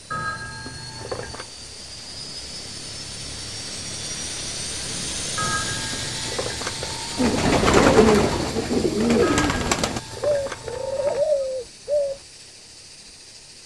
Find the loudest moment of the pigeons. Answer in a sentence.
The loudest moment of the pigeons is at 8 seconds.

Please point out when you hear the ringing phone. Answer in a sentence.
The ringing phone can be heard from 0.1 to 1.5 s, from 5.3 to 7.4 s and from 9.2 to 11.2 s.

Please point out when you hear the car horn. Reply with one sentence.
You can't hear the car horn here.